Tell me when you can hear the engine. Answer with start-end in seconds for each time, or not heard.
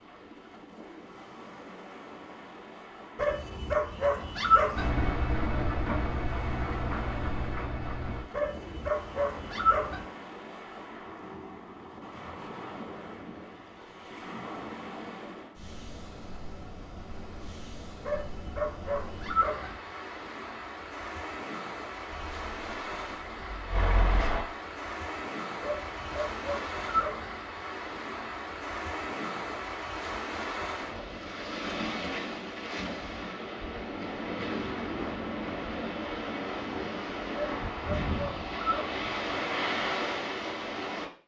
4.8-8.3, 22.1-24.4.